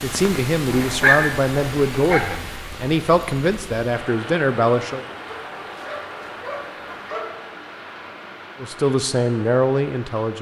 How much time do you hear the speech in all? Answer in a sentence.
The speech can be heard for 7 seconds in total.